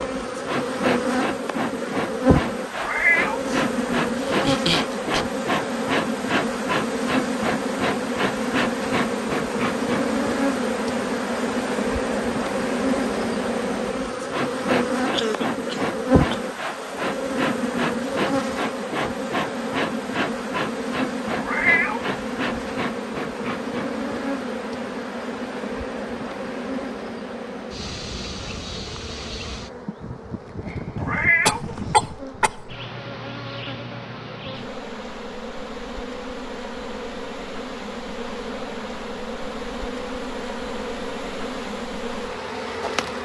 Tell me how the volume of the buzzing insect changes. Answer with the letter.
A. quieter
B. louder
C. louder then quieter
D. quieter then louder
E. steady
A.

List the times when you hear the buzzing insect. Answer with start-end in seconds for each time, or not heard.
0.0-43.1.